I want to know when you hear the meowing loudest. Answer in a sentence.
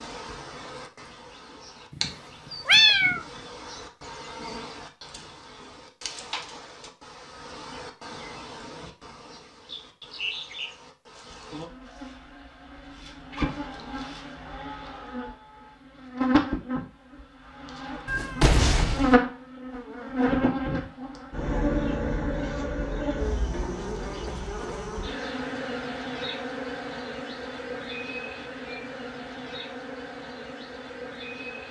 The loudest moment of the meowing is at 3 seconds.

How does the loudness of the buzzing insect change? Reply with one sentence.
The volume of the buzzing insect goes up, then down.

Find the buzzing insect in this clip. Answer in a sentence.
The buzzing insect can be heard from 0.0 to 31.6 s.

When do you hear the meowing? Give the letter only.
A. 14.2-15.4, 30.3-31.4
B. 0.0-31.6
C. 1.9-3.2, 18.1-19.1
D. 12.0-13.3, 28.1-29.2
C.